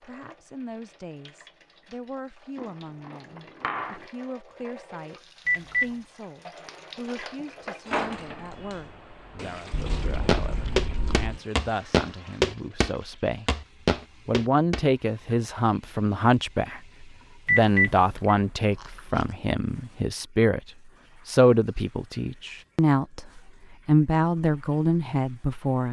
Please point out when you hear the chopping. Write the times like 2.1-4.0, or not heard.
not heard.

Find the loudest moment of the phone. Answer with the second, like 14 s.
18 s.